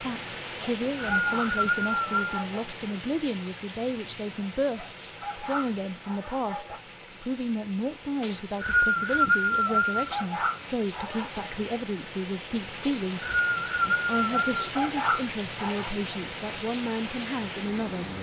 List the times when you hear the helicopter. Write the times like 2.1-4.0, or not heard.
not heard.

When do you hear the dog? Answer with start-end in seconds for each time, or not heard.
0.6-2.6, 4.8-6.8, 9.7-11.5, 14.3-15.9.